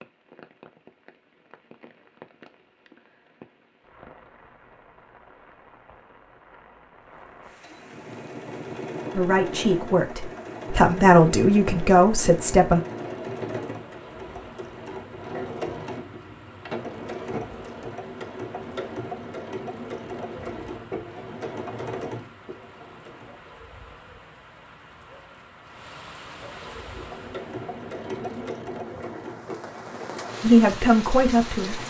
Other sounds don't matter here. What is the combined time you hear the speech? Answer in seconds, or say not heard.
5 s.